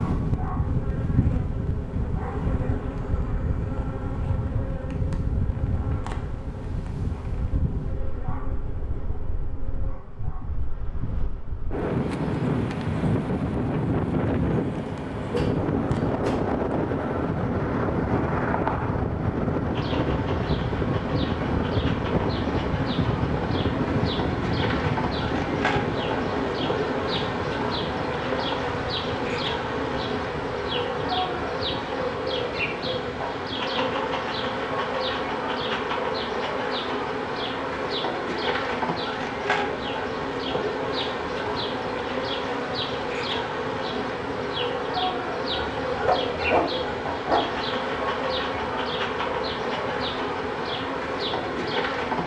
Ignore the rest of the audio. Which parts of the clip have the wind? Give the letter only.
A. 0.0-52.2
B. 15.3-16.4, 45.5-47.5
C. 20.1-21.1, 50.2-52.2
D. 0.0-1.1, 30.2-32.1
A.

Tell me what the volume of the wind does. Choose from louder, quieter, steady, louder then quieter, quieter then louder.
louder then quieter.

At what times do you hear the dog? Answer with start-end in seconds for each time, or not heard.
15.3-16.4, 45.5-47.5.